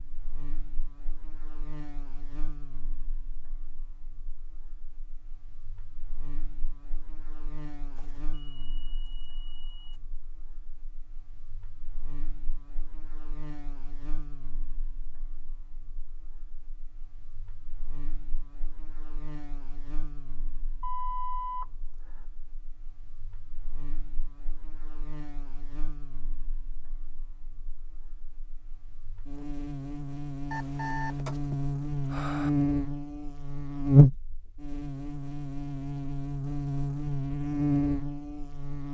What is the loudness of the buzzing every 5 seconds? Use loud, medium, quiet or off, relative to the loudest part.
quiet, quiet, quiet, quiet, quiet, quiet, loud, medium.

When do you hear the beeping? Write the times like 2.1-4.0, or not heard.
8.0-10.0, 20.8-22.2, 30.5-32.5.